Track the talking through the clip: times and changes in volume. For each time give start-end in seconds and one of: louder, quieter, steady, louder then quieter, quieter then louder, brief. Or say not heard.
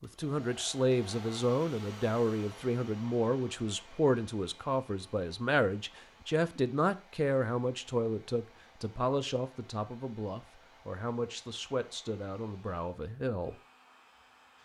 0.0-13.6 quieter.